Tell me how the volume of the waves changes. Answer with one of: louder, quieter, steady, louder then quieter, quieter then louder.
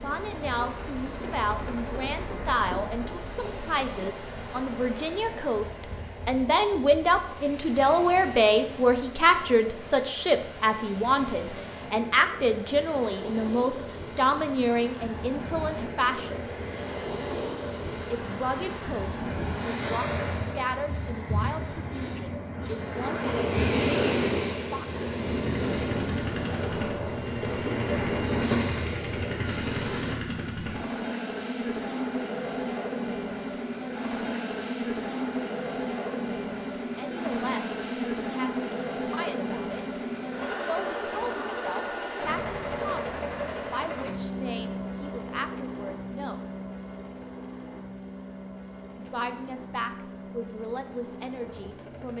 louder.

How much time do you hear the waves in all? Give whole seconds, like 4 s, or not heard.
30 s.